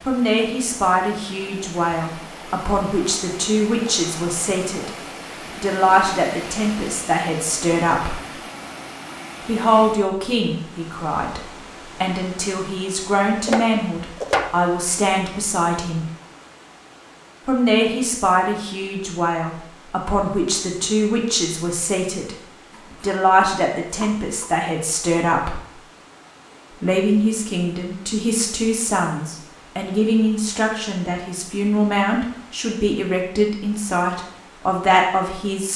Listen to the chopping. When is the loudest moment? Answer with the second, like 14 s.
14 s.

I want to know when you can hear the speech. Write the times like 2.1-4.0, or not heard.
0.1-4.9, 5.6-8.2, 9.4-16.1, 17.4-22.4, 23.0-25.6, 26.8-35.7.